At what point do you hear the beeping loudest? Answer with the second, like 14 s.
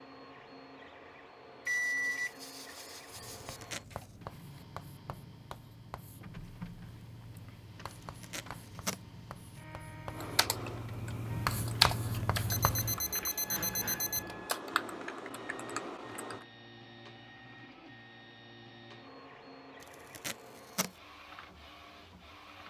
2 s.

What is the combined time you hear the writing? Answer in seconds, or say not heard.
10 s.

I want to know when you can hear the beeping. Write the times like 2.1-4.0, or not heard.
1.6-3.6, 12.5-14.2.